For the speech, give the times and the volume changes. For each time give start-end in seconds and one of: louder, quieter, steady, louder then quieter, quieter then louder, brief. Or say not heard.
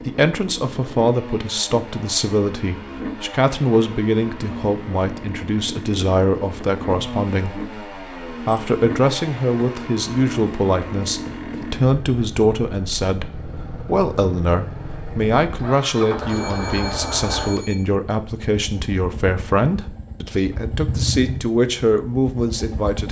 0.0-23.0 steady.